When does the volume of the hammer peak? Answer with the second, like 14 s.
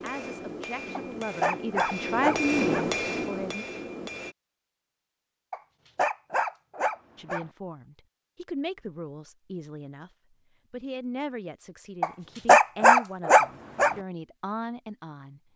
3 s.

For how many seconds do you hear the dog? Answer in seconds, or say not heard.
6 s.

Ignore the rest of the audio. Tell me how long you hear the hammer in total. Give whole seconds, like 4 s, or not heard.
4 s.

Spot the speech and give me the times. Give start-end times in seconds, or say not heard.
0.0-3.6, 7.2-10.1, 10.7-15.4.